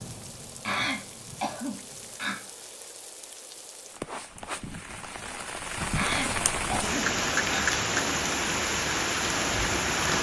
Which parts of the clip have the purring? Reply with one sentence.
You can't hear the purring here.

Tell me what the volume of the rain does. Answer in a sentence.
The volume of the rain goes up.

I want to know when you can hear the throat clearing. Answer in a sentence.
The throat clearing can be heard from 0.7 to 2.4 s and from 6.0 to 7.8 s.